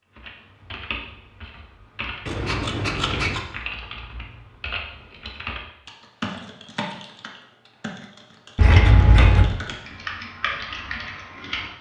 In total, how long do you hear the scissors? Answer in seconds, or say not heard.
2 s.